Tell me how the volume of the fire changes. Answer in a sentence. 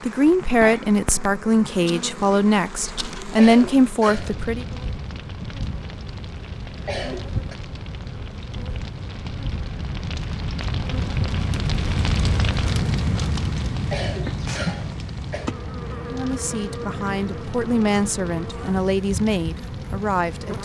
The loudness of the fire goes up, then down.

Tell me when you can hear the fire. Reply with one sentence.
You can hear the fire from 0.1 to 20.5 s.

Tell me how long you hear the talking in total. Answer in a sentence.
The talking can be heard for 9 seconds in total.